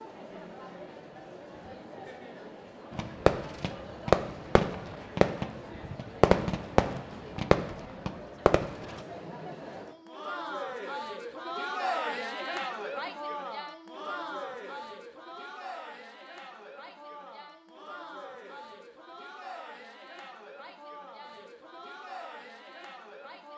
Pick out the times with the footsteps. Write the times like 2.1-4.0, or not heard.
not heard.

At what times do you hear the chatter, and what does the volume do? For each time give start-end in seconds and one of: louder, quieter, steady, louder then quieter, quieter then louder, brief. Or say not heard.
0.0-23.5 louder then quieter.